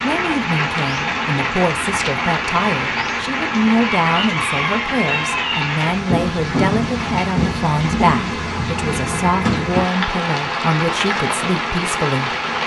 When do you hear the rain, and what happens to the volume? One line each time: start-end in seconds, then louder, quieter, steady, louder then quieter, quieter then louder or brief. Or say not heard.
0.0-12.6 steady.